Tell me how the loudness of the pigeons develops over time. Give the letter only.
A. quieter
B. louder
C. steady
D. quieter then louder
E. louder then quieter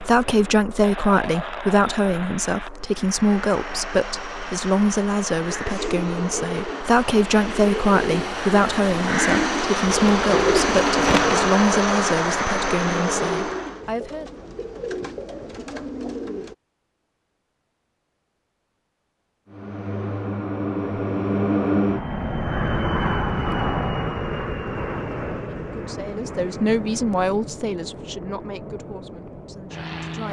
E.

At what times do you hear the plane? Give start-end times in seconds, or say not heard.
0.0-13.8, 19.4-30.2.